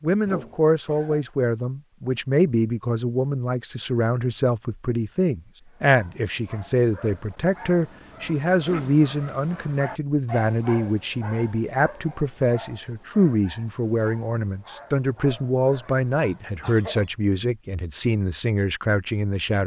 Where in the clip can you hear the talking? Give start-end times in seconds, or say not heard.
0.0-19.6.